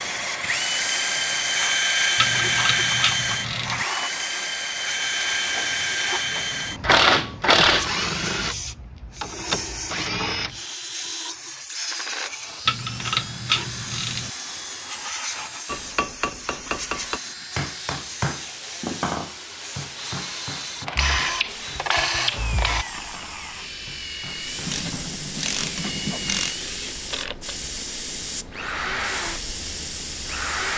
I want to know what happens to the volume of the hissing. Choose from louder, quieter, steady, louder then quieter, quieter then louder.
quieter then louder.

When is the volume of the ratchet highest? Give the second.
7 s.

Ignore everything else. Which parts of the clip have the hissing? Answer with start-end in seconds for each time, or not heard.
0.0-30.7.